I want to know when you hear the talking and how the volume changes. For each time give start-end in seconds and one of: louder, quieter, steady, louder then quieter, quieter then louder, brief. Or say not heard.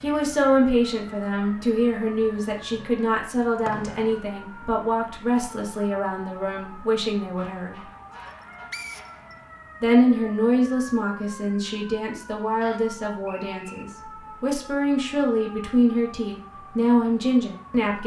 0.0-7.8 quieter
9.8-18.0 quieter then louder.